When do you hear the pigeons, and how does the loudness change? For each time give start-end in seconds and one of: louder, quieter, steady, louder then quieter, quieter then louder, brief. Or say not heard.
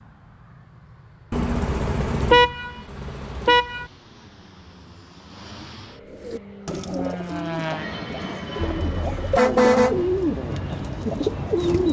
6.1-11.8 quieter then louder.